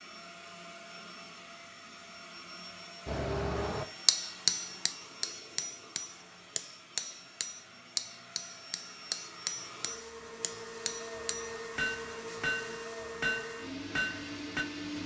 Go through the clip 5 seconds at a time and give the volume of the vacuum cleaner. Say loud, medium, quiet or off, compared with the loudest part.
medium, medium, loud.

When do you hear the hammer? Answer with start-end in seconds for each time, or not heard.
3.0-14.7.